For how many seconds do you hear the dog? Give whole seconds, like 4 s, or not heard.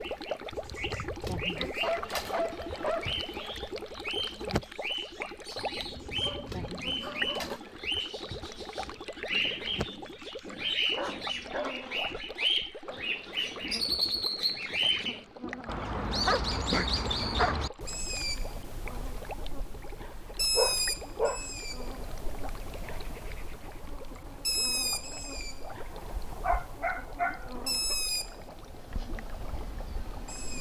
9 s.